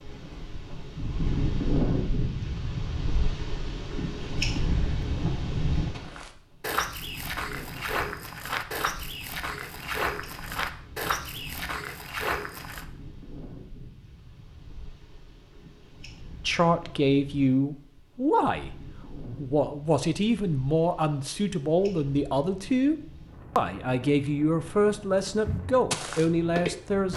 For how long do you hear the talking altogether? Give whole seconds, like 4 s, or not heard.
10 s.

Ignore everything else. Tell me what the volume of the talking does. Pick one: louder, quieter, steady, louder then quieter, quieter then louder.
steady.